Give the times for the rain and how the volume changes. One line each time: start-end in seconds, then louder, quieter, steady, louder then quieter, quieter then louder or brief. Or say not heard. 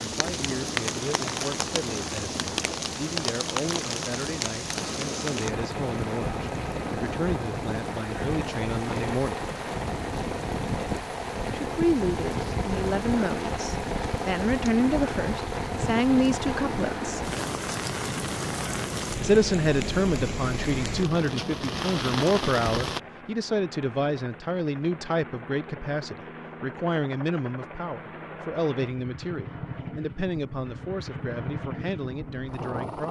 0.0-23.0 steady.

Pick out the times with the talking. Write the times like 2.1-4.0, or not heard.
0.0-9.4, 11.6-17.2, 19.2-33.0.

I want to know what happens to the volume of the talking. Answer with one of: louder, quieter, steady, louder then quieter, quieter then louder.
louder then quieter.